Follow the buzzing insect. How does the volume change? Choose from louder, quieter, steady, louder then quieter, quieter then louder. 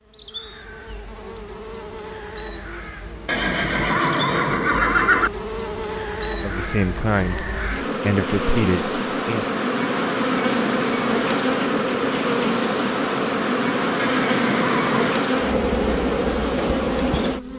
louder.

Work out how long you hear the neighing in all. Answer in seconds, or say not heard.
3 s.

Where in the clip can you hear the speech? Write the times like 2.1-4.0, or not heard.
6.4-9.4.